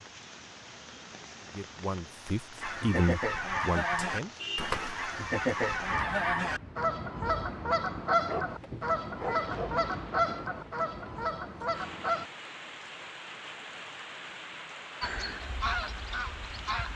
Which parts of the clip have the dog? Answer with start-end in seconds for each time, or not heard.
8.2-9.8.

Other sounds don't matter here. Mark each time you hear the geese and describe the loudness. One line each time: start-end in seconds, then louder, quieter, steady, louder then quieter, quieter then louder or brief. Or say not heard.
2.6-12.2 steady
15.0-16.9 brief.